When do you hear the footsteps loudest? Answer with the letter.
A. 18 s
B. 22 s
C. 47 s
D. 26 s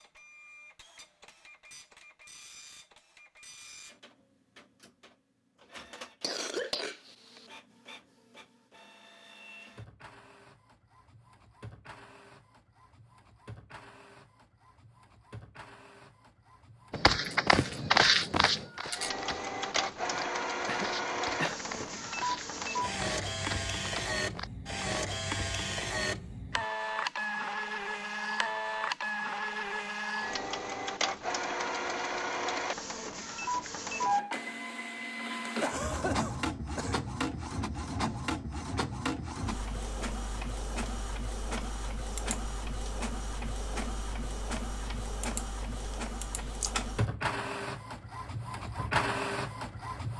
A.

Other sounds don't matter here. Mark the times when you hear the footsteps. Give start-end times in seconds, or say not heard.
16.9-25.0.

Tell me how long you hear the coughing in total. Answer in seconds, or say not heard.
4 s.